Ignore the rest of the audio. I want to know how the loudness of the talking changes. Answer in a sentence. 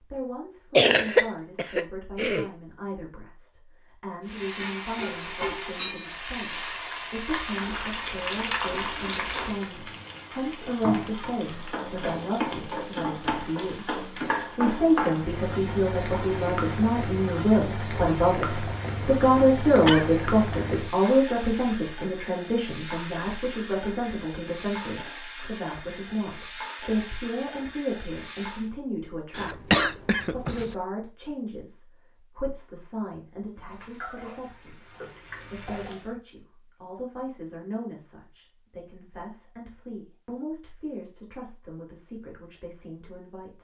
The volume of the talking goes up, then down.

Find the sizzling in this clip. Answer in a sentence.
The sizzling can be heard from 4.2 to 28.7 s and from 33.5 to 36.1 s.